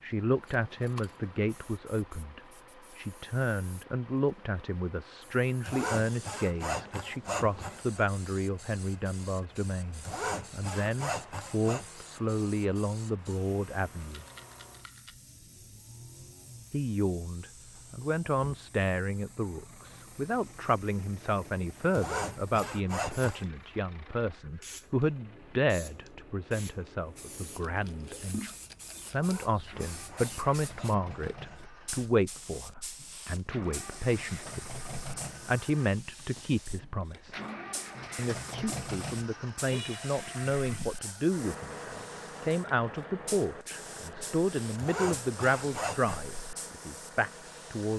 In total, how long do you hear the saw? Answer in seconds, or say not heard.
10 s.